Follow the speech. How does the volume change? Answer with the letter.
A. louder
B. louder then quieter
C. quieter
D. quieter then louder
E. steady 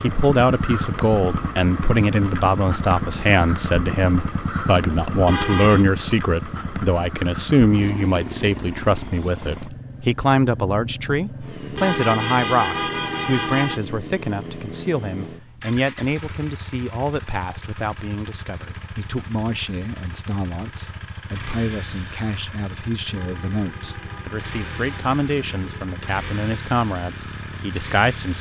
C.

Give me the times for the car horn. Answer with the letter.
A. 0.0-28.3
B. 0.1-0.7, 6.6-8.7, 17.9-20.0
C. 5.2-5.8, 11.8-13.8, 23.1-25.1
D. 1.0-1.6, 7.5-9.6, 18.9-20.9
C.